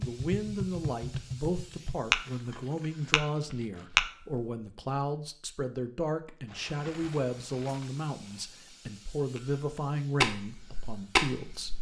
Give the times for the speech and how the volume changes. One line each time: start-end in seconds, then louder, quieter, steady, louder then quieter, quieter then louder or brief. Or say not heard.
0.0-11.7 steady.